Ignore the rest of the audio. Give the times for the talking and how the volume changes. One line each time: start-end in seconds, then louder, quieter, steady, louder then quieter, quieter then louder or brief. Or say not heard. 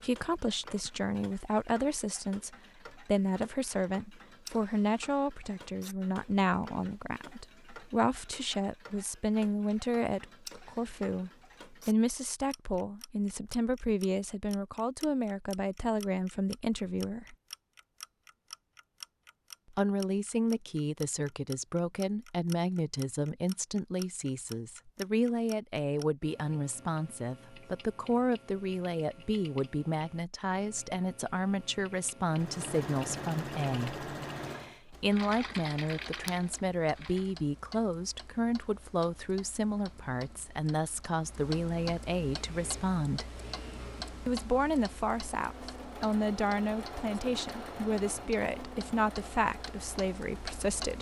0.0-17.4 steady
19.8-43.2 steady
44.2-50.9 steady.